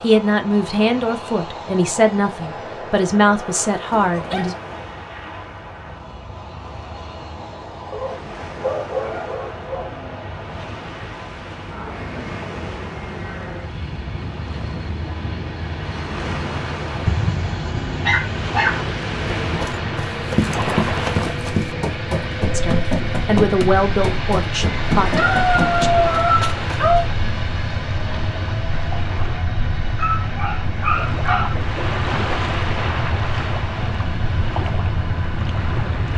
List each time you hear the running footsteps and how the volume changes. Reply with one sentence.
You can hear the running footsteps from 19.4 to 26.9 s, at a steady volume.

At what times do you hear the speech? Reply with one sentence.
You can hear the speech from 0.0 to 4.5 s and from 22.5 to 25.9 s.